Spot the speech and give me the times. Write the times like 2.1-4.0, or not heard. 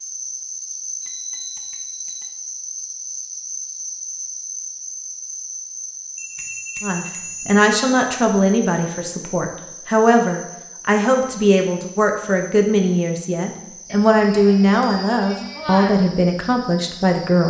6.8-17.4.